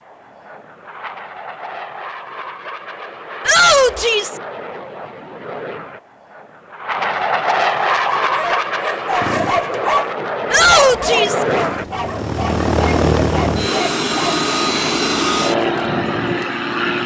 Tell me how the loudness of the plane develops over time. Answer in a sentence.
The volume of the plane goes up.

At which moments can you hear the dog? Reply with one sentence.
The dog can be heard from 7.9 to 14.4 s.